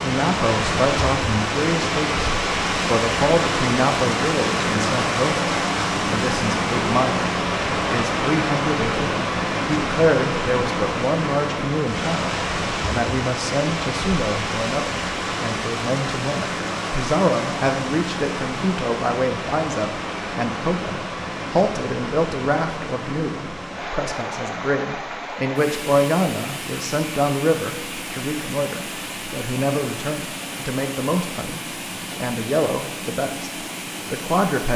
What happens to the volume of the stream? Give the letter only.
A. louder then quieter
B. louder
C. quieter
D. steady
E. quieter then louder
C.